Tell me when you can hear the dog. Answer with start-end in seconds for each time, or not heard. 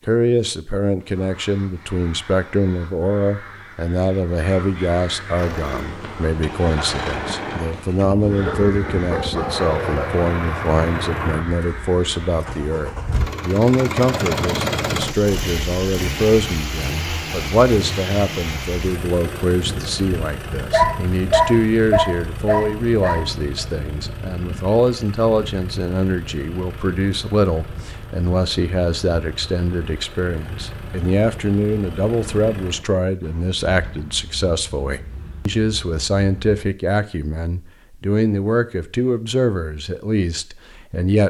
8.2-10.2, 20.7-23.6.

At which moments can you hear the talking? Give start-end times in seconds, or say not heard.
0.1-41.2.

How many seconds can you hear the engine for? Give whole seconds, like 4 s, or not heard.
31 s.